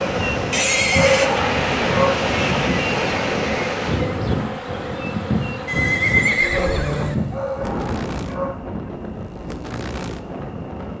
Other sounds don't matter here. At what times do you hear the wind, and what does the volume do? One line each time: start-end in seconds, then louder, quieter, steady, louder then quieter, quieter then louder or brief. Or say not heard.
0.0-10.9 quieter.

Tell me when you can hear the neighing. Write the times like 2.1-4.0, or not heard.
0.5-1.3, 5.7-7.2.